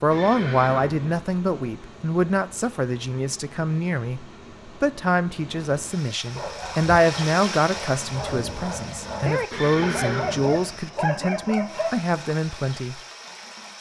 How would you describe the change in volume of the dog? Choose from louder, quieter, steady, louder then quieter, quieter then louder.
louder.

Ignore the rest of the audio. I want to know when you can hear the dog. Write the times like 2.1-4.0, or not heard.
6.3-12.1.